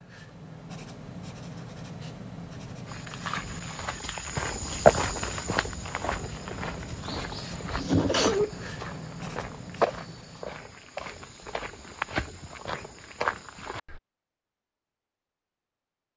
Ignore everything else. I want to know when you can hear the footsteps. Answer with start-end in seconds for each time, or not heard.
2.9-14.0.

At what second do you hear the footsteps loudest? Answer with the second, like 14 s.
5 s.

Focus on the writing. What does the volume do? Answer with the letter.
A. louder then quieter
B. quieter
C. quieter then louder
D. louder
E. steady
E.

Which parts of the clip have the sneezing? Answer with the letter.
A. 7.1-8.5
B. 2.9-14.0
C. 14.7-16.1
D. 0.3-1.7
A.